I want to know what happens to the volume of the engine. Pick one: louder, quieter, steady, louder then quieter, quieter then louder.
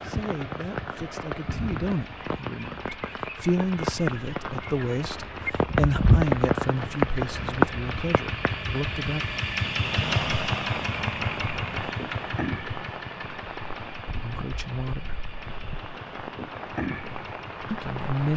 louder then quieter.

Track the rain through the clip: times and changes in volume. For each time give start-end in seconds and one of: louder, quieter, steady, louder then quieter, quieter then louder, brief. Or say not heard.
0.0-18.3 louder then quieter.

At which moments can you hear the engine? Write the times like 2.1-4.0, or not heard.
0.0-18.3.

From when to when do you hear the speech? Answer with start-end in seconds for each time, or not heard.
0.0-9.2, 14.2-15.2, 17.7-18.3.